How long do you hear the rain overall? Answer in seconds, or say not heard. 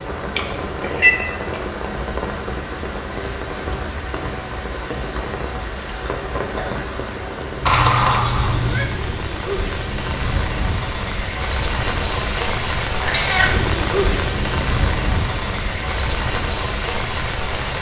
18 s.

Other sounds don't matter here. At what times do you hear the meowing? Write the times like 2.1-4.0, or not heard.
0.3-1.6, 7.7-8.8, 12.9-13.6.